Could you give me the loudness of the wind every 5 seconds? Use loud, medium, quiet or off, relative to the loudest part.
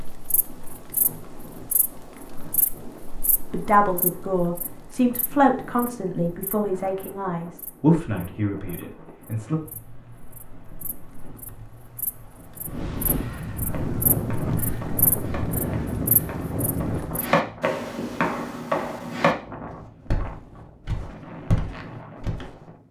quiet, quiet, loud, loud, medium.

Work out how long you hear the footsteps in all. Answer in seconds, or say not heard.
8 s.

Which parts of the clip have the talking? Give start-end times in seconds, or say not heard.
3.5-9.6.